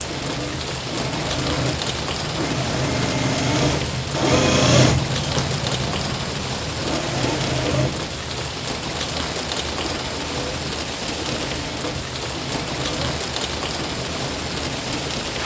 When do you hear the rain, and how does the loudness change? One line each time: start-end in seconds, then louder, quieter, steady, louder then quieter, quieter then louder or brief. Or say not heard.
0.0-15.4 steady.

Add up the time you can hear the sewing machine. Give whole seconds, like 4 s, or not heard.
15 s.